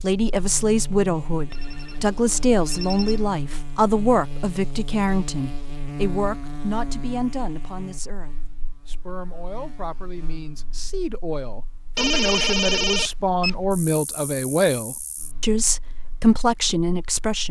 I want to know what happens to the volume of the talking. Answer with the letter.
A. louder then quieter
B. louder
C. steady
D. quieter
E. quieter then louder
E.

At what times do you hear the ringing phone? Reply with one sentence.
You can hear the ringing phone from 1.5 to 3.3 s and from 11.9 to 13.6 s.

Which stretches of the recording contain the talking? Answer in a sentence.
The talking can be heard from 0.0 to 17.4 s.